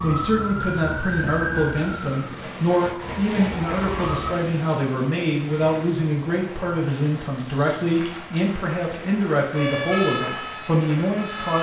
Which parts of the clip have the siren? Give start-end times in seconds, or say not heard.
0.0-4.4, 9.5-11.5.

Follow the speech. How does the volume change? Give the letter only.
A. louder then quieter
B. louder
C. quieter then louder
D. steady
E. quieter
D.